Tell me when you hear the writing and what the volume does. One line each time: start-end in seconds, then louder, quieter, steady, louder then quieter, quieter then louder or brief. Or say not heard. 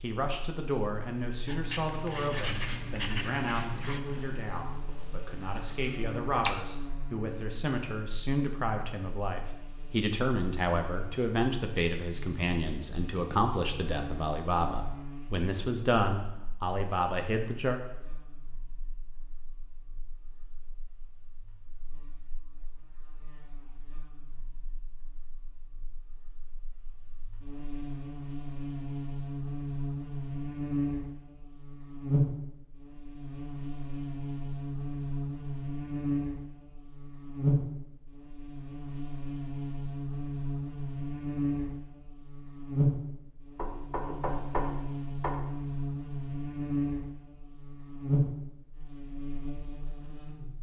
1.4-6.6 quieter.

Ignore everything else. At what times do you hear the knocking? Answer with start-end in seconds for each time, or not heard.
43.5-45.4.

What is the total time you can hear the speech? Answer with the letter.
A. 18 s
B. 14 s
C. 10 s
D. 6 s
A.